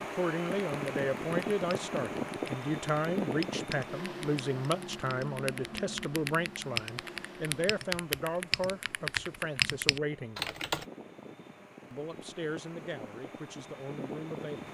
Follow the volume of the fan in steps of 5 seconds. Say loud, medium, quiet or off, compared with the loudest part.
loud, medium, medium.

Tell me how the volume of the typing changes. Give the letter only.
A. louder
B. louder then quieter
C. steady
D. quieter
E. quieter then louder
A.